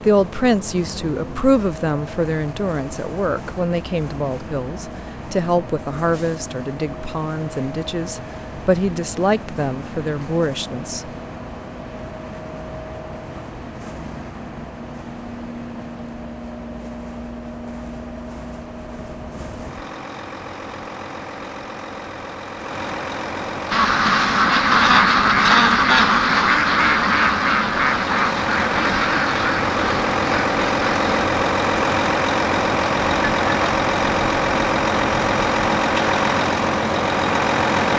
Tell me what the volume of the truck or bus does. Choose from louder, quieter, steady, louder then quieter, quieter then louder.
louder.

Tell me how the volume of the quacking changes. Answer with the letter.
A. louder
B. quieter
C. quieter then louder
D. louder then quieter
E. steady
B.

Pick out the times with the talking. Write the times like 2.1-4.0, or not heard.
0.1-11.1.